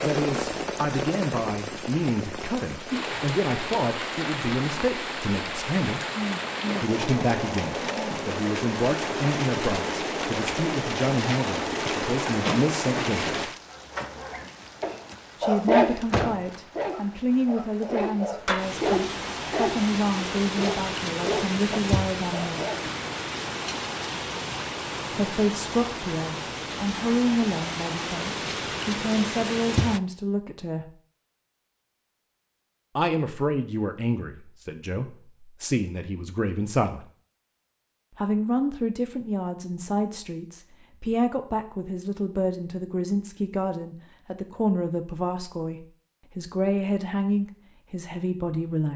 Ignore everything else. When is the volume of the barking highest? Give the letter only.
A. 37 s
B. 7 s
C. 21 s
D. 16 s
D.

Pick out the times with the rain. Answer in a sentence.
The rain can be heard from 0.0 to 30.0 s.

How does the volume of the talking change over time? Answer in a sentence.
The loudness of the talking stays about the same.